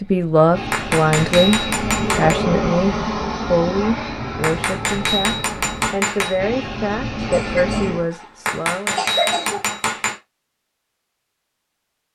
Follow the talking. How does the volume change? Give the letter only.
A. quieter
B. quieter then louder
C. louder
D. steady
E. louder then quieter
A.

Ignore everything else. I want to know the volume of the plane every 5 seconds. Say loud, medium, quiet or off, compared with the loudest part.
loud, loud, off.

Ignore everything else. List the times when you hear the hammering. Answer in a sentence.
You can hear the hammering from 0.7 to 2.4 s, from 4.4 to 6.4 s and from 8.4 to 10.2 s.